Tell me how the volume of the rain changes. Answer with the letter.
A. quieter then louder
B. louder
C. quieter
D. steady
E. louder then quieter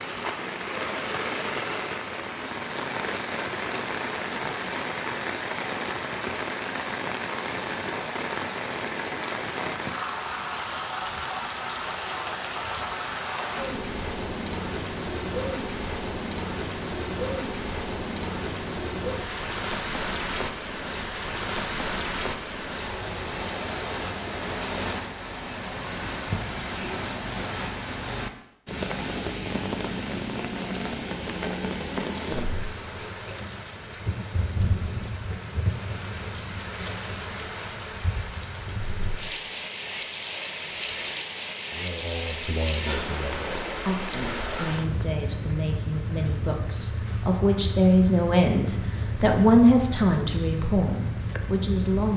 D.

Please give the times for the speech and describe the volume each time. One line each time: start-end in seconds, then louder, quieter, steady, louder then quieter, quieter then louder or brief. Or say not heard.
41.7-52.1 louder then quieter.